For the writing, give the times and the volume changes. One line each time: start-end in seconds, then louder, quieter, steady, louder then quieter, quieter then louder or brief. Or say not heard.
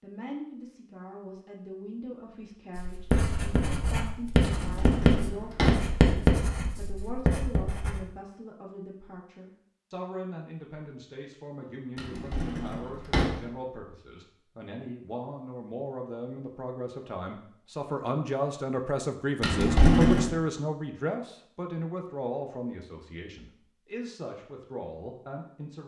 2.8-8.0 louder then quieter.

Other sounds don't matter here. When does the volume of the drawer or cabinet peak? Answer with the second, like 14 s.
20 s.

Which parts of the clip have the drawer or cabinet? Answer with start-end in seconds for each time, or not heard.
4.4-5.9, 11.9-13.4, 19.4-20.3.